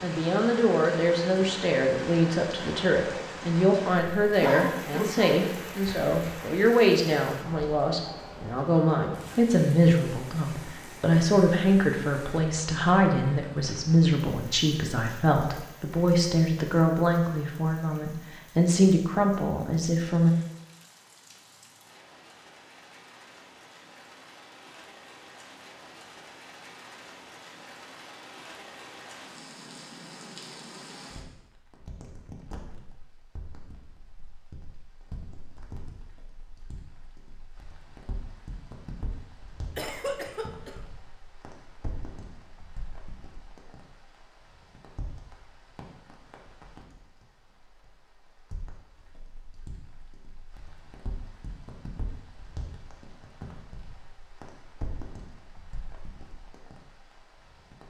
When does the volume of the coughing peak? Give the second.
5 s.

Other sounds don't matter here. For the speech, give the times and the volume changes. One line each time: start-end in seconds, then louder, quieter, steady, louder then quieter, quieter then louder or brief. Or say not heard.
0.0-20.4 steady.